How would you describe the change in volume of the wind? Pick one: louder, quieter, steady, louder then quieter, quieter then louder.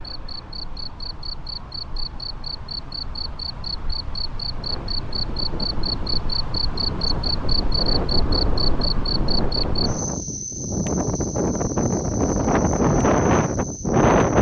louder.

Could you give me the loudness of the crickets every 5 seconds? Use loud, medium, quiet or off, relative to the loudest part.
medium, loud, medium.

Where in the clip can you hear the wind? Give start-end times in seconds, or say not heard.
4.5-14.3.